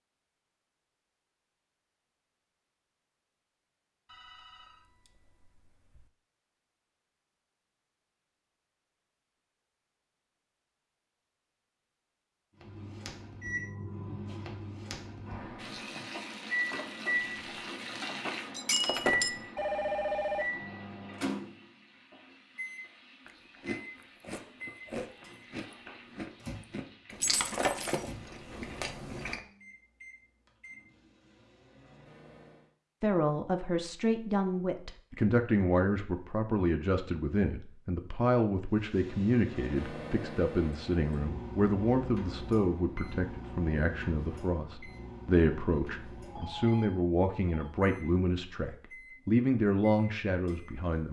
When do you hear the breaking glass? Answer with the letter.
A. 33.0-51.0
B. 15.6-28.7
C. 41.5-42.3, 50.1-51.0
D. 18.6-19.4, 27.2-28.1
D.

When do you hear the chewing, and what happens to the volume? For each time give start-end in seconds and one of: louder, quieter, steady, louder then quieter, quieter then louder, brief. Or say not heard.
23.2-29.4 steady.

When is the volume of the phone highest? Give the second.
20 s.